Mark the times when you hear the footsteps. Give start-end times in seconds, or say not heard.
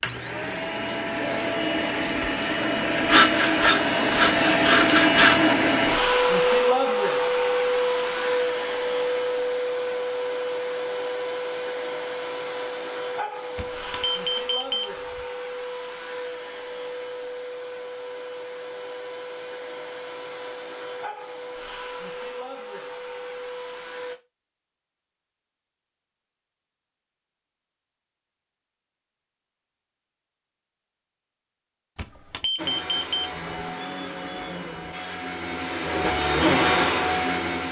not heard.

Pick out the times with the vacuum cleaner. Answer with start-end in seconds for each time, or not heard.
0.0-24.2, 32.5-37.6.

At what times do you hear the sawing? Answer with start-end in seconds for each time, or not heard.
3.0-5.5.